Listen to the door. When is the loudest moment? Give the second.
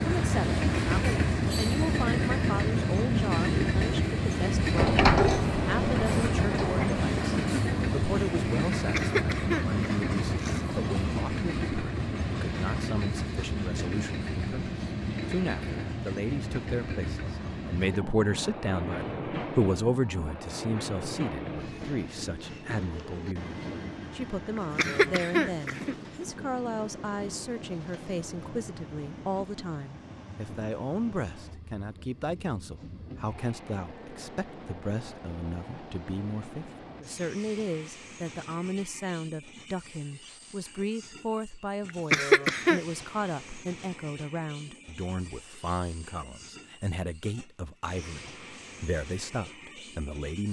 5 s.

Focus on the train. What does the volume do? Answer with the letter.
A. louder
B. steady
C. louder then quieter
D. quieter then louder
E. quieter
E.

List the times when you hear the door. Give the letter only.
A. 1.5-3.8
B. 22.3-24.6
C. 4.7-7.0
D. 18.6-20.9
C.